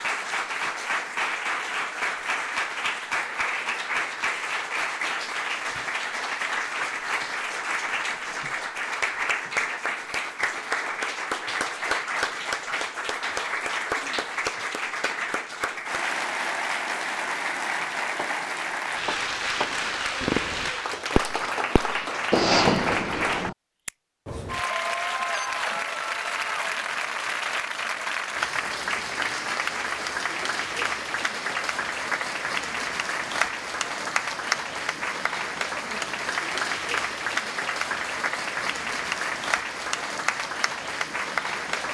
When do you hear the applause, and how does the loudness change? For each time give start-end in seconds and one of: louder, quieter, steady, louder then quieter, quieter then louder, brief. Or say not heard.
0.0-41.8 steady.